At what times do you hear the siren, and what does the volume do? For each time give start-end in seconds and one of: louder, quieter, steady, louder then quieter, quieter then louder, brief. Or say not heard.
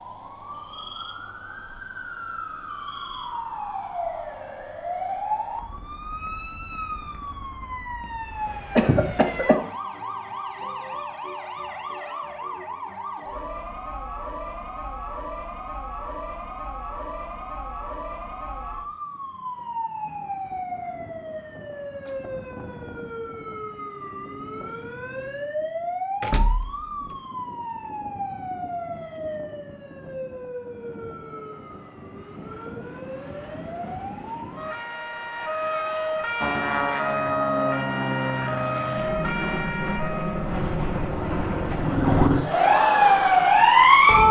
0.0-44.2 louder.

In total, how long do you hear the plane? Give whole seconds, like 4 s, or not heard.
8 s.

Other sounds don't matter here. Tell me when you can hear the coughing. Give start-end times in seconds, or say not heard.
8.8-9.7.